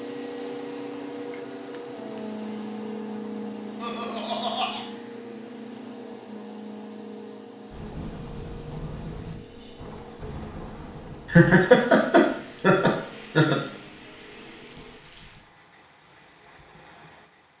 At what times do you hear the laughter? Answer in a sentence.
The laughter can be heard from 3.8 to 4.8 s and from 11.3 to 13.6 s.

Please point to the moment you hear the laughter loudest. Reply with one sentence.
The volume of the laughter peaks at 12 seconds.